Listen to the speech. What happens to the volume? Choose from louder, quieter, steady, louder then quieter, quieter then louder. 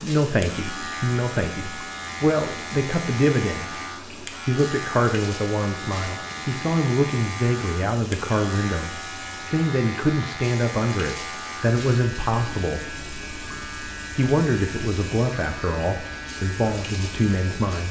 steady.